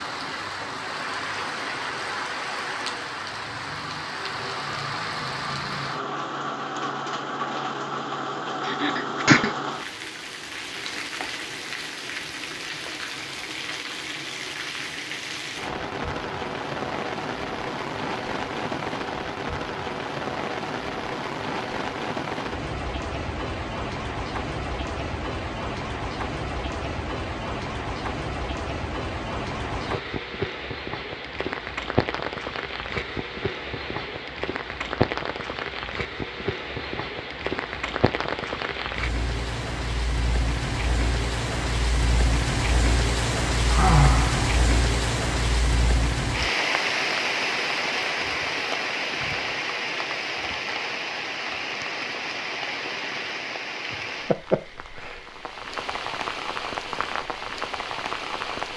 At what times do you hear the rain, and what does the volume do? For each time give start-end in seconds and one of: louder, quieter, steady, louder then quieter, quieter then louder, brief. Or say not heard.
0.0-58.7 steady.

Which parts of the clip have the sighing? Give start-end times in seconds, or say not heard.
8.7-9.5, 43.6-45.0.